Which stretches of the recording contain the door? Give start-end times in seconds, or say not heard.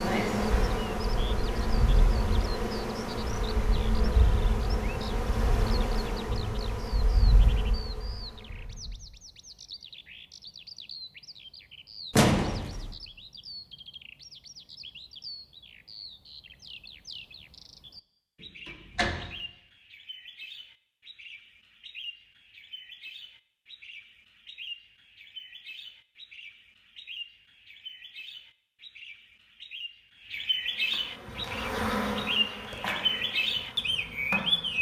12.1-12.9, 18.6-19.3.